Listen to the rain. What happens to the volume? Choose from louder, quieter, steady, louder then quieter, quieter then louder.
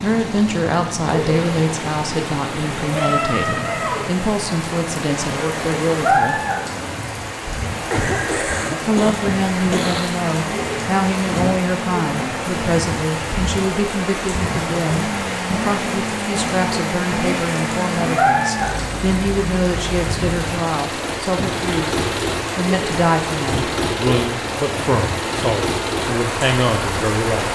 steady.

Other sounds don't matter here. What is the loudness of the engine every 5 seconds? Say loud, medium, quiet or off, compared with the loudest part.
medium, medium, loud, loud, loud, loud.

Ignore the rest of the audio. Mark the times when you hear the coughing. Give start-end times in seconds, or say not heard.
7.9-10.2.